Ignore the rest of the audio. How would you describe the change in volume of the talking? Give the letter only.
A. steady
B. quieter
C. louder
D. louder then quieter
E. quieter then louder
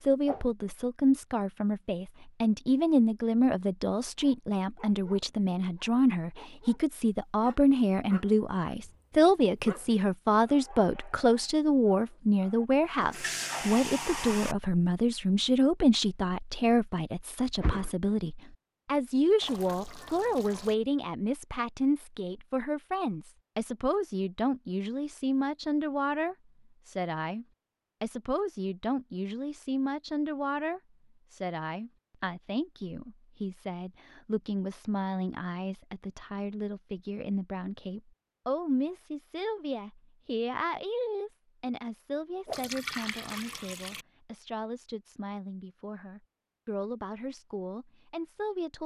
B.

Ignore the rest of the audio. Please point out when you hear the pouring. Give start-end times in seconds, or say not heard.
13.0-14.6, 19.4-20.8, 42.5-44.0.